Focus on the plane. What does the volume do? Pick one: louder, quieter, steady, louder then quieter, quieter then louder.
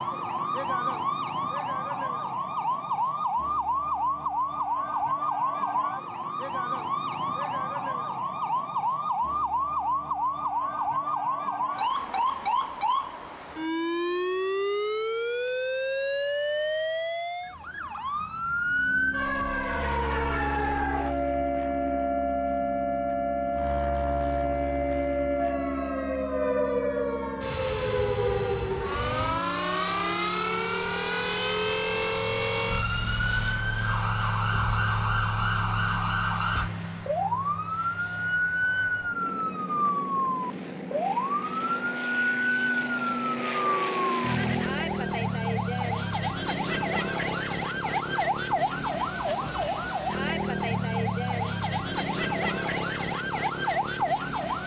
steady.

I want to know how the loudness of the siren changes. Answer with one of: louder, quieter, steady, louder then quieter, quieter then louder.
steady.